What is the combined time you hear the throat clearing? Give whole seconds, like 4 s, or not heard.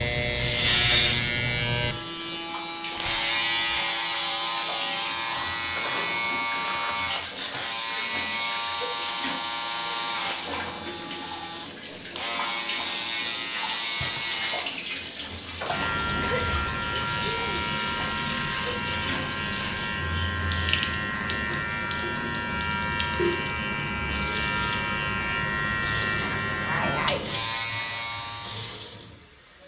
5 s.